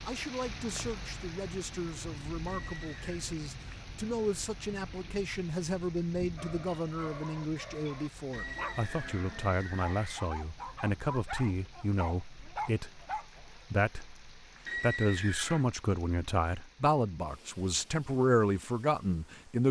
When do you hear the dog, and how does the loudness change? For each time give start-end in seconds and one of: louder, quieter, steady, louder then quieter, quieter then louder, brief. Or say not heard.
6.3-13.4 louder.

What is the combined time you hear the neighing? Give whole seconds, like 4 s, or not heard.
4 s.